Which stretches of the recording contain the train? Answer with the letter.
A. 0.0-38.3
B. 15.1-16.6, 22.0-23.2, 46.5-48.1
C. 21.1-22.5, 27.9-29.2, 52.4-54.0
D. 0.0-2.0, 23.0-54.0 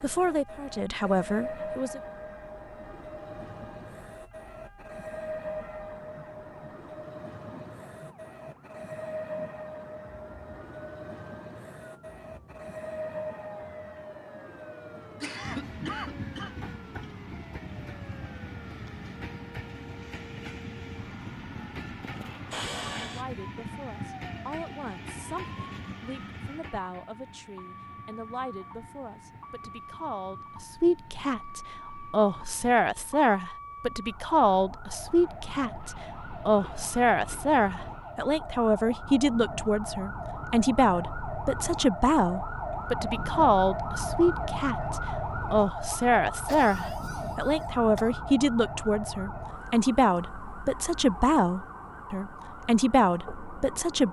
A.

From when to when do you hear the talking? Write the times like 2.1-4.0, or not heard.
0.0-2.0, 23.0-54.0.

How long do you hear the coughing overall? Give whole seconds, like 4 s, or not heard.
4 s.